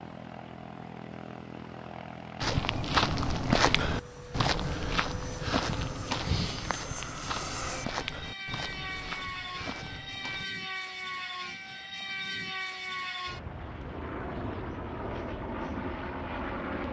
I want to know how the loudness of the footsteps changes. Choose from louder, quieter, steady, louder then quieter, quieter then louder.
quieter.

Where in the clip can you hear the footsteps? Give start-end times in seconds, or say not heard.
2.4-10.4.